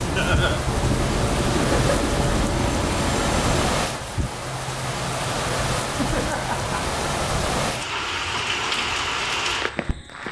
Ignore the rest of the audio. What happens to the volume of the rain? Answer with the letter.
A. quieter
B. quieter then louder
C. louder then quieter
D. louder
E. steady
E.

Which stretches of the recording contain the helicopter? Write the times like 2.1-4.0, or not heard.
0.0-3.9.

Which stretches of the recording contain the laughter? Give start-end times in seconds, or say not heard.
1.5-1.9, 5.9-7.0.